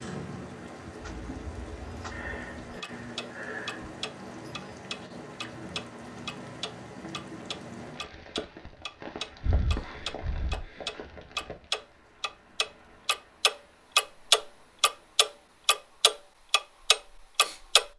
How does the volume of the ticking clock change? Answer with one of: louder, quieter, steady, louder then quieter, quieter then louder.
louder.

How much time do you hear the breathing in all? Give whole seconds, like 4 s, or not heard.
3 s.